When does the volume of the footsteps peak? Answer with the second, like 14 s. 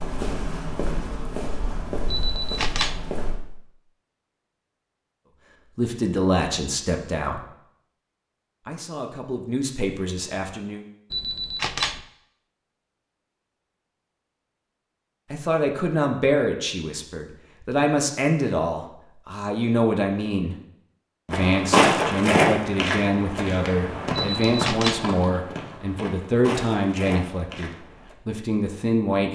22 s.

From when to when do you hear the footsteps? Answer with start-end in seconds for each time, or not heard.
0.0-3.4, 21.3-28.1.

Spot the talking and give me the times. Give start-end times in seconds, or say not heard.
5.8-7.5, 8.7-10.8, 15.3-20.6, 21.2-29.2.